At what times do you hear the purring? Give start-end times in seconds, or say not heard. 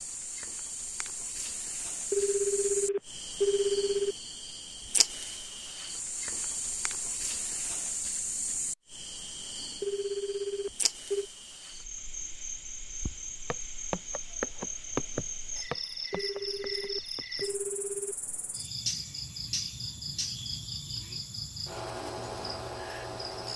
not heard.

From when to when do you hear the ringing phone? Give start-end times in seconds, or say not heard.
2.1-4.2, 9.8-11.2, 16.1-18.1.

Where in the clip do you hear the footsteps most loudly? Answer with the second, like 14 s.
15 s.